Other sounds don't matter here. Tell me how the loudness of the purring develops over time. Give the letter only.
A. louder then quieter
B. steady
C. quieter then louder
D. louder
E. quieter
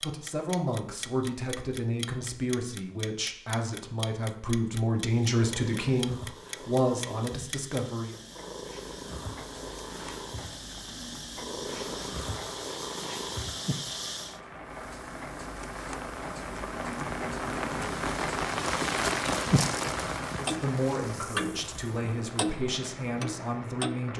D.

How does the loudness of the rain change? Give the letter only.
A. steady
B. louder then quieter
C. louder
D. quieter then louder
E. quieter
B.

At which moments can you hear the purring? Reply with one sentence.
You can hear the purring from 5.0 to 14.4 s.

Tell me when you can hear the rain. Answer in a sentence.
The rain can be heard from 11.6 to 24.1 s.